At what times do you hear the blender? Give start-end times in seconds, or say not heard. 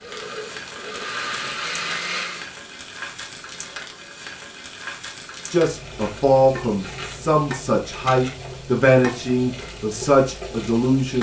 0.0-2.5.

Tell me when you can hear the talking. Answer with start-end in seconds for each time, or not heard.
5.5-11.1.